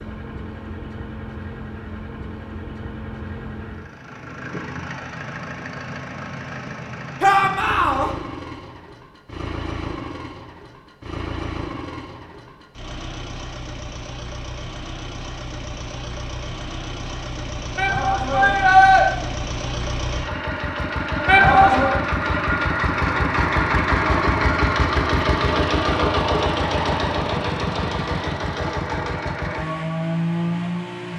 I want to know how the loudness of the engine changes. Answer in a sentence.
The volume of the engine goes up.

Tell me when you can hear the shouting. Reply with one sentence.
You can hear the shouting from 7.2 to 8.1 s, from 17.8 to 19.1 s and from 21.2 to 21.9 s.